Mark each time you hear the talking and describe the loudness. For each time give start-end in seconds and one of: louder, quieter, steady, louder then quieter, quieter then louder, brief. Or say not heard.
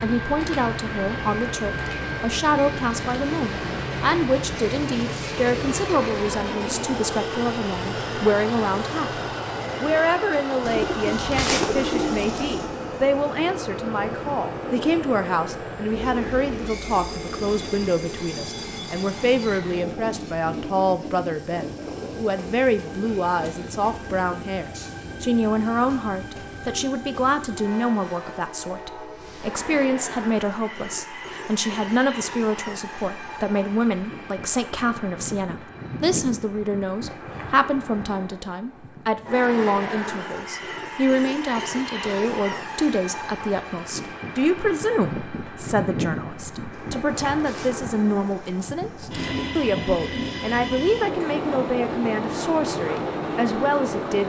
0.0-54.2 steady.